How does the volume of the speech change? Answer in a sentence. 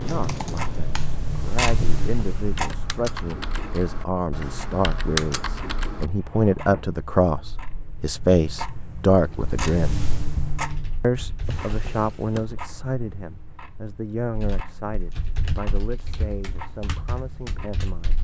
The volume of the speech goes up, then down.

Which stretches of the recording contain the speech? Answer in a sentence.
The speech can be heard from 0.0 to 10.1 s and from 11.0 to 18.1 s.